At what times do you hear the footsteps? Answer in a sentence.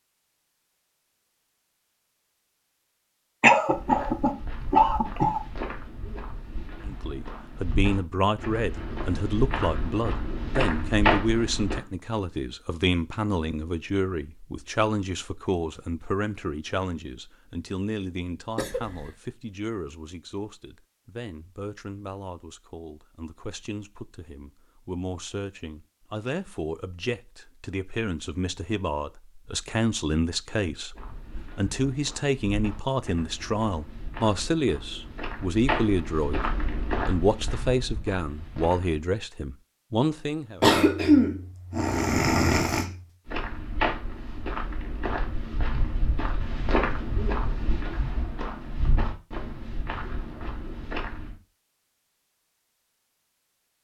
You can hear the footsteps from 3.7 to 11.8 s, from 30.9 to 39.0 s and from 43.2 to 51.4 s.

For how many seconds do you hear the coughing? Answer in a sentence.
You can hear the coughing for 5 seconds altogether.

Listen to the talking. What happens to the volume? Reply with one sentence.
The volume of the talking goes down, then up.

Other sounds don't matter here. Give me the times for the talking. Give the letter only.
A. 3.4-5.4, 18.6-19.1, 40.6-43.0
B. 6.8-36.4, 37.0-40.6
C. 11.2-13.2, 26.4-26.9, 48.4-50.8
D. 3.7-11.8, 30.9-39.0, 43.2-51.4
B.